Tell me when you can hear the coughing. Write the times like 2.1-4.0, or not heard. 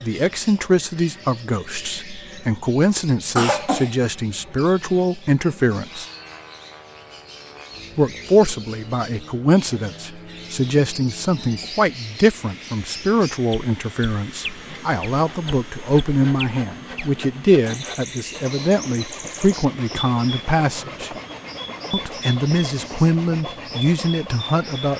3.4-4.0.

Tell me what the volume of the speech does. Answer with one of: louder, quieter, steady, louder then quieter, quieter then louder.
steady.